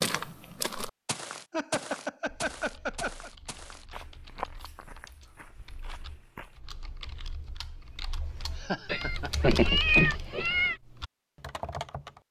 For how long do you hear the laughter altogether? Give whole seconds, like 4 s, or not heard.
3 s.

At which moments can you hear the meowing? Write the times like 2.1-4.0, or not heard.
8.8-10.8.